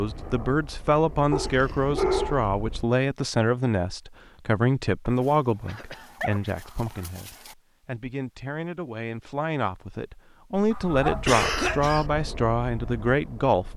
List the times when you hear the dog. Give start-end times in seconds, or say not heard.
1.3-2.5, 5.0-7.5, 10.7-11.9.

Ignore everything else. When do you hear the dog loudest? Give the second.
2 s.